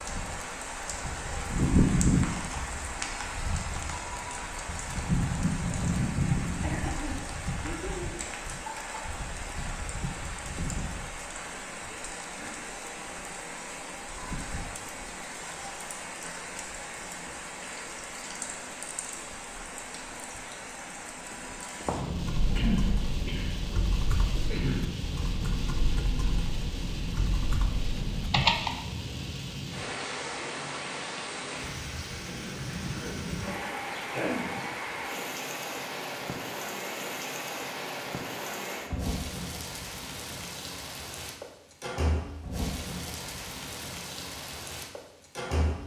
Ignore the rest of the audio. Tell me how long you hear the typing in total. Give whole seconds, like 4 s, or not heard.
7 s.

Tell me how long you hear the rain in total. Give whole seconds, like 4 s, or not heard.
46 s.